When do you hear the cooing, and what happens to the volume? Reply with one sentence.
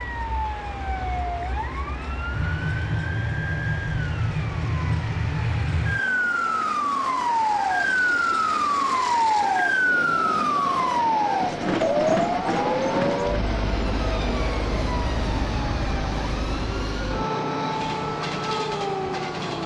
You can't hear the cooing here.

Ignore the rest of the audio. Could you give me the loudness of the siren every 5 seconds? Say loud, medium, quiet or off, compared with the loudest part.
medium, loud, loud, medium.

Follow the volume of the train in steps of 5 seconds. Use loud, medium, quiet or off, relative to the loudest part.
medium, medium, loud, loud.